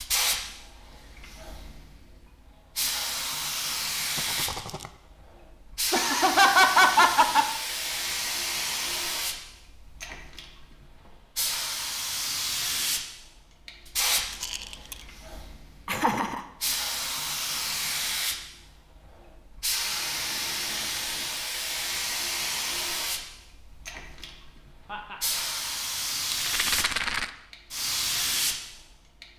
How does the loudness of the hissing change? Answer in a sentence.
The volume of the hissing stays about the same.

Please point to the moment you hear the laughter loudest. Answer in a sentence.
The volume of the laughter peaks at 7 seconds.